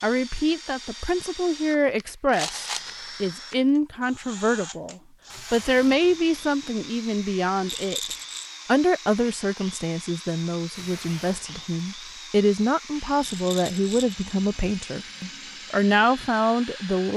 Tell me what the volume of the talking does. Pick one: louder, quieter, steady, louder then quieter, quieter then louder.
steady.